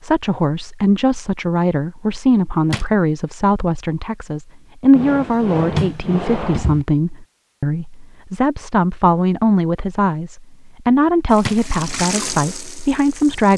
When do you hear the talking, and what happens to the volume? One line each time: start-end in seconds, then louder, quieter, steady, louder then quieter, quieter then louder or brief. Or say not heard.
0.0-13.5 steady.